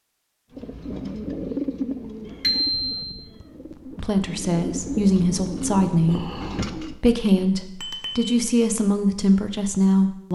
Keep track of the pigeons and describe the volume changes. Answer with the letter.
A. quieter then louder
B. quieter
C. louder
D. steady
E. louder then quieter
A.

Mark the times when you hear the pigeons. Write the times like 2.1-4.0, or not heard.
0.5-7.0.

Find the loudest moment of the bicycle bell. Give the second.
3 s.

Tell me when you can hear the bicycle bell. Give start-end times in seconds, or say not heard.
2.4-3.0, 7.8-8.3.